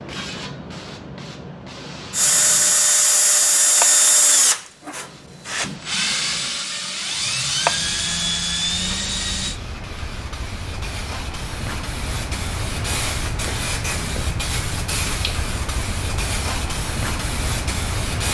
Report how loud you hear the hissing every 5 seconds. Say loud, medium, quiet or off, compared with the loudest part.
medium, medium, loud, loud.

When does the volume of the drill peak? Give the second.
4 s.